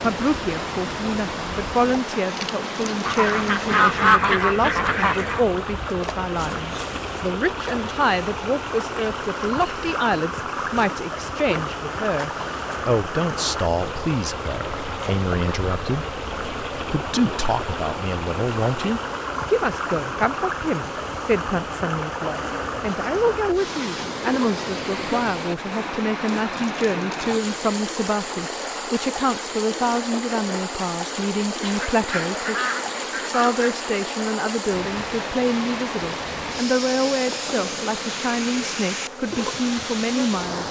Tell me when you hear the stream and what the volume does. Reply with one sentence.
You can hear the stream from 0.0 to 40.6 s, at a steady volume.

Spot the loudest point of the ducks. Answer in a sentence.
The loudest moment of the ducks is at 4 seconds.